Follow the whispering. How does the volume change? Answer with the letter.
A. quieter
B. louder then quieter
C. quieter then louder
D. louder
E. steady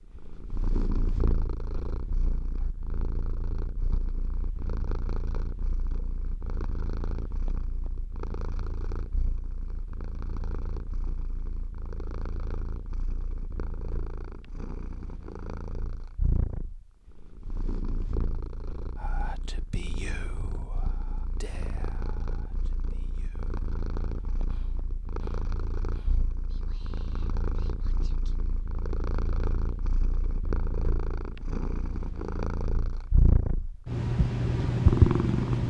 A.